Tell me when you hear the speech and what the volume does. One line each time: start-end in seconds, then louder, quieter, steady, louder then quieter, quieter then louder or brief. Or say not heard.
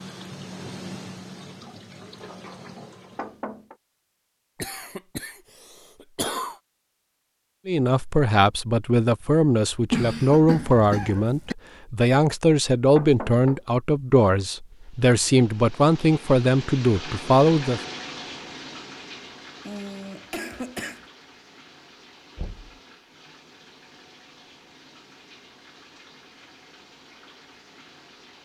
7.7-17.8 steady.